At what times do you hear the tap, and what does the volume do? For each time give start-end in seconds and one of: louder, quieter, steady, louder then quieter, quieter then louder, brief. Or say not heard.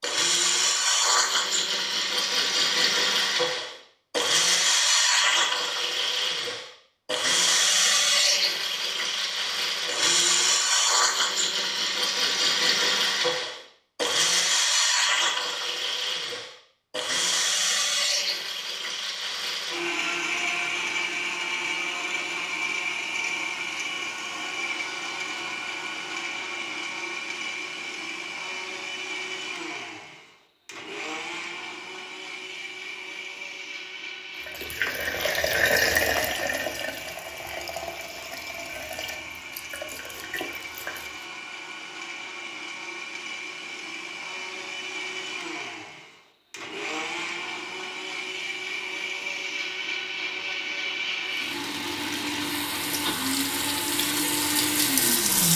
34.4-41.2 quieter
51.2-55.5 louder.